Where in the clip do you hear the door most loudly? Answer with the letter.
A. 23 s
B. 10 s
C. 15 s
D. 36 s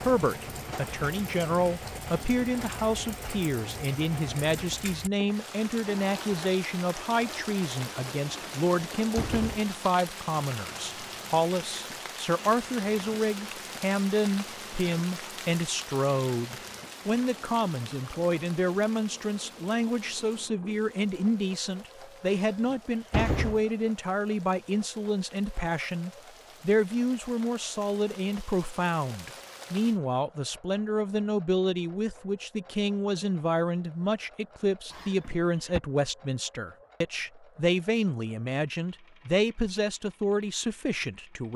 A.